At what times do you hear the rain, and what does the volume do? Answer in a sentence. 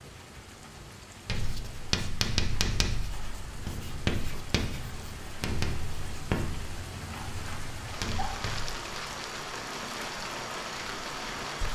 You can hear the rain from 0.0 to 11.7 s, getting louder.